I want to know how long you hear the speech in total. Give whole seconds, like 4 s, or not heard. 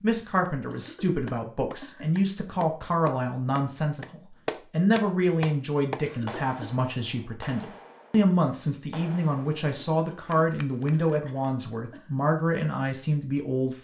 14 s.